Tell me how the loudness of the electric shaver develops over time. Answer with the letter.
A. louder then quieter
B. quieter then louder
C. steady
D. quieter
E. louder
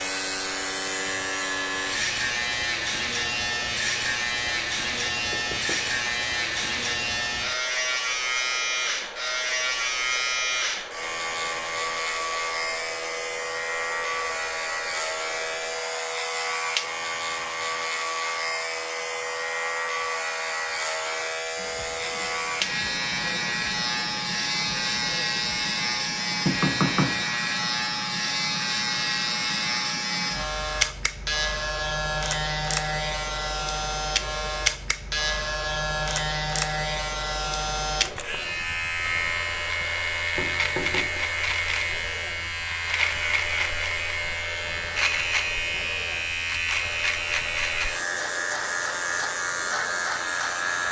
C.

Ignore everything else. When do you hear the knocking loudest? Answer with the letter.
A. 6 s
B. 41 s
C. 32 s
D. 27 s
D.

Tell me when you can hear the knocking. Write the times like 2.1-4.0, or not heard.
5.3-5.9, 26.4-27.2, 40.4-41.2.